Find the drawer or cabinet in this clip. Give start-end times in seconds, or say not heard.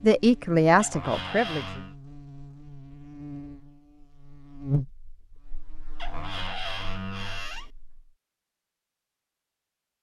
0.8-1.9, 6.0-7.7.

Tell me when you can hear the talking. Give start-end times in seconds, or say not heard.
0.0-1.8.